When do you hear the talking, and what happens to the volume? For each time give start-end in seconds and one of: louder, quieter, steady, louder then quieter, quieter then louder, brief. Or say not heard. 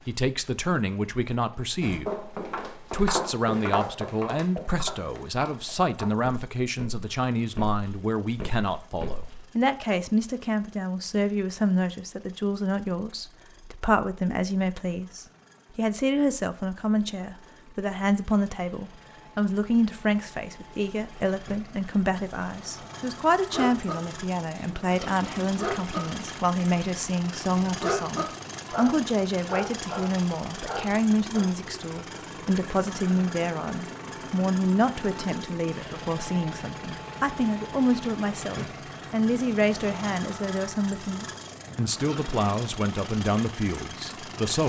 0.1-44.6 steady.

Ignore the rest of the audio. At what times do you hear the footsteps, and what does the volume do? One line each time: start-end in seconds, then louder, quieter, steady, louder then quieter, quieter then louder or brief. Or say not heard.
1.8-9.4 quieter.